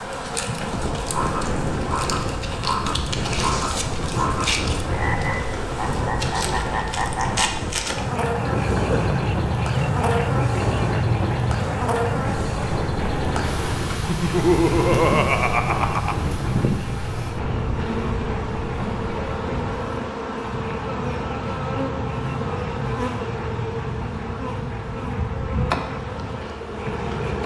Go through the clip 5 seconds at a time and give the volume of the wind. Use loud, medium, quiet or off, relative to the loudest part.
loud, loud, loud, loud, off, off.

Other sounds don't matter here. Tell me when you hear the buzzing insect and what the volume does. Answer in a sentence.
The buzzing insect can be heard from 0.0 to 27.4 s, at a steady volume.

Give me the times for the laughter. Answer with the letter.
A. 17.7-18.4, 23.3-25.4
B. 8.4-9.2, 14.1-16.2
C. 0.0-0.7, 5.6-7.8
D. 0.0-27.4
B.